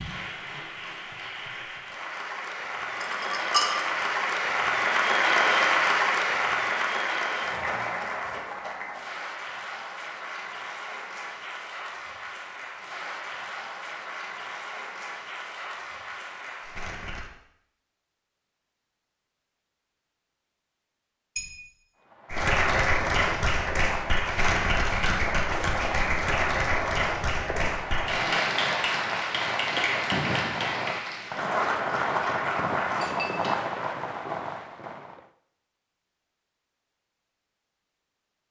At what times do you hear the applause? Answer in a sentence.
You can hear the applause from 0.0 to 17.3 s and from 22.3 to 33.1 s.